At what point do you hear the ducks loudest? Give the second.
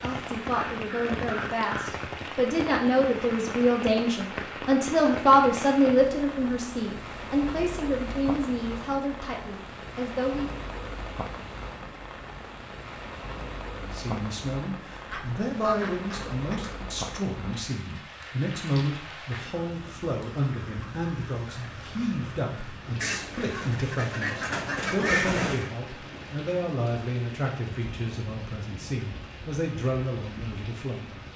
25 s.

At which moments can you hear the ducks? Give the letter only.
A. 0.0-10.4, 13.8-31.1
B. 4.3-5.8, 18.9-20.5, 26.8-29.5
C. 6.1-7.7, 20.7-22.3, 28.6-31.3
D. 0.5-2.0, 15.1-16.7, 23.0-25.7
D.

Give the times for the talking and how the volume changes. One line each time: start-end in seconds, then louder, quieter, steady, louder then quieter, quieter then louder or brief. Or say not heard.
0.0-10.4 louder then quieter
13.8-31.1 steady.